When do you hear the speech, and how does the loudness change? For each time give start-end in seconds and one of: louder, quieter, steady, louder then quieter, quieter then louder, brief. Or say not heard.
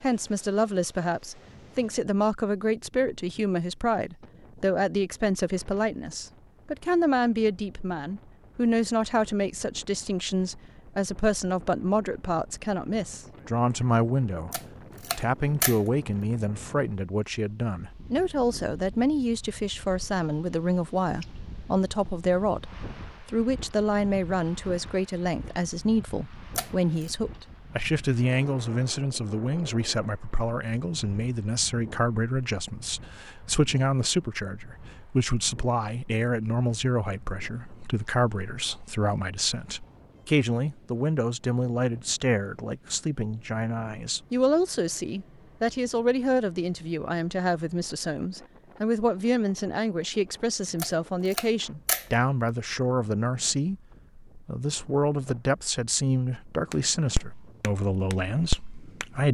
0.0-59.2 steady.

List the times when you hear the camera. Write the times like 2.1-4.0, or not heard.
14.5-15.8, 26.6-27.1, 50.8-52.0.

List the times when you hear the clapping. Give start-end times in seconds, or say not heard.
56.7-59.0.